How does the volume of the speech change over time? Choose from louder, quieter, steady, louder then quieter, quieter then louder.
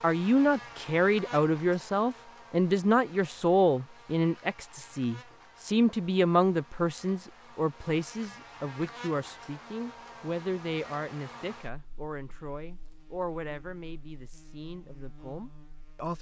quieter.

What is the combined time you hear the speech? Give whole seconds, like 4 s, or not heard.
16 s.